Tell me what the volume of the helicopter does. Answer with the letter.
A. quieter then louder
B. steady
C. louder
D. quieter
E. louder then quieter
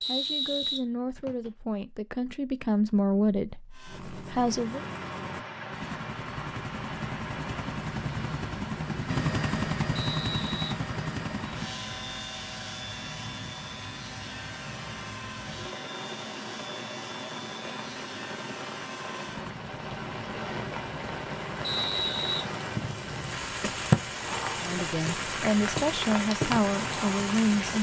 E.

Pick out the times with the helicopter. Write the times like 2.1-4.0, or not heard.
3.7-22.5.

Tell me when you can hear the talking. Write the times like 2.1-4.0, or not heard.
0.1-4.8, 24.6-27.7.